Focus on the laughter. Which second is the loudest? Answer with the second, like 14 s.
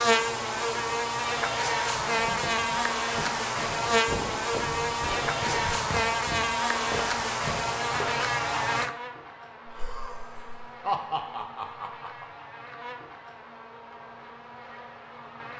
11 s.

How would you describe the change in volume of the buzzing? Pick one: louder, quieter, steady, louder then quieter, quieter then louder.
quieter.